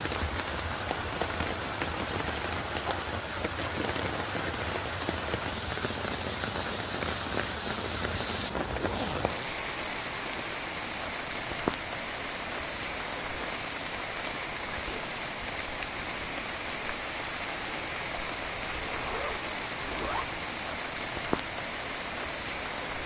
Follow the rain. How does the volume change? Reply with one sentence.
The loudness of the rain stays about the same.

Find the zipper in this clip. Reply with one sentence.
The zipper can be heard from 8.8 to 9.7 s and from 18.6 to 20.4 s.